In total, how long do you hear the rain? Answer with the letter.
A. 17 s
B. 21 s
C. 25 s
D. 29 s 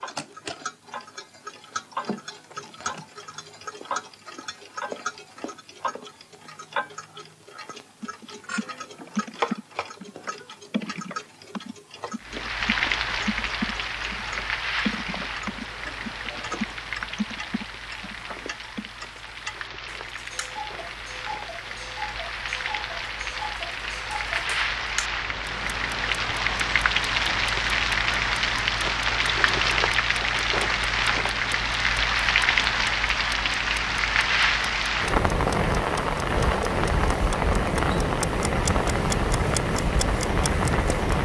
D.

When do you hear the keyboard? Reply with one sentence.
You can hear the keyboard from 8.0 to 18.9 s.